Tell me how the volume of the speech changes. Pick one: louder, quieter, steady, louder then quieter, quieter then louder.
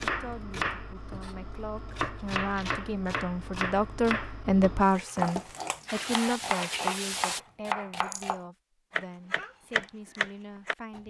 louder then quieter.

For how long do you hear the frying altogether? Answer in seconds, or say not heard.
3 s.